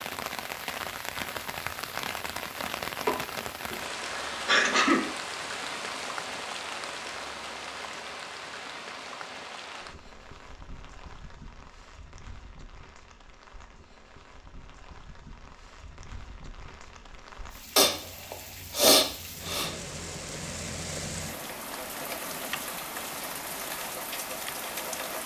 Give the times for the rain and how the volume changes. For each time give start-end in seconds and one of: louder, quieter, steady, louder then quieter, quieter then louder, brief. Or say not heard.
0.0-25.2 quieter then louder.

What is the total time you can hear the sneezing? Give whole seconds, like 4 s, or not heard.
4 s.